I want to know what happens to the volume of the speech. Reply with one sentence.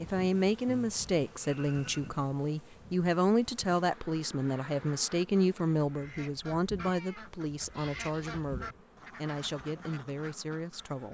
The volume of the speech goes down.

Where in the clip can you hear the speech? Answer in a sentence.
You can hear the speech from 0.0 to 11.0 s.